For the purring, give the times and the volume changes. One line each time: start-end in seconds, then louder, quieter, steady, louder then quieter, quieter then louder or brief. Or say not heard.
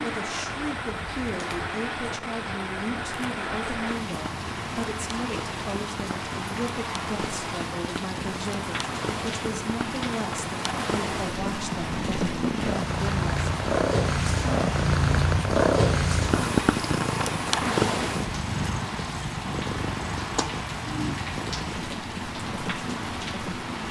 0.0-23.8 louder then quieter.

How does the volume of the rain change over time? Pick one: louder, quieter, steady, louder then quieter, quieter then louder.
steady.